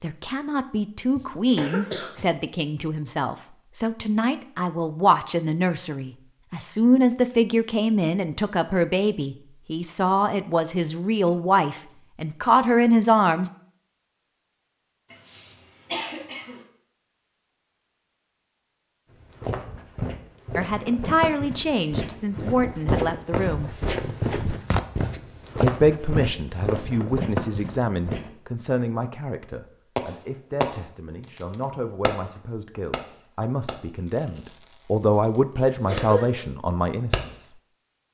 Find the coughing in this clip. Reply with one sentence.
The coughing can be heard from 1.1 to 2.2 s, from 15.1 to 16.6 s and from 35.6 to 36.5 s.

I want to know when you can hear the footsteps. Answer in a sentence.
The footsteps can be heard from 19.2 to 28.3 s.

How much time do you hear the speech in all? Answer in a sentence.
You can hear the speech for 28 seconds altogether.